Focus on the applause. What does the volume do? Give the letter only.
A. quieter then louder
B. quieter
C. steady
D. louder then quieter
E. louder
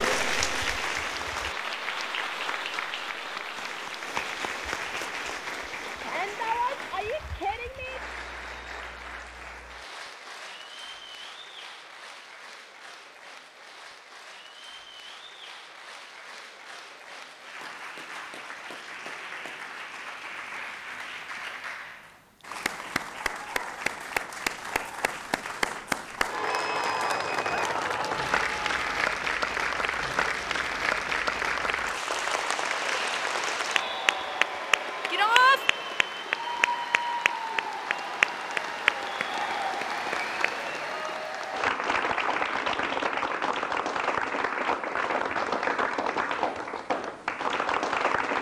A.